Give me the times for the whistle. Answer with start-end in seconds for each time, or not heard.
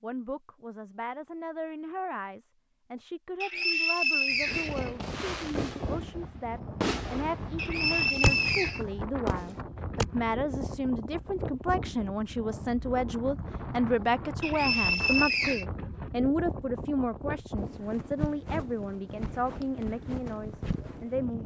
3.4-4.9, 7.5-8.8, 14.4-15.7.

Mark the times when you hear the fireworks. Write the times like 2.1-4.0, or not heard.
4.5-10.1.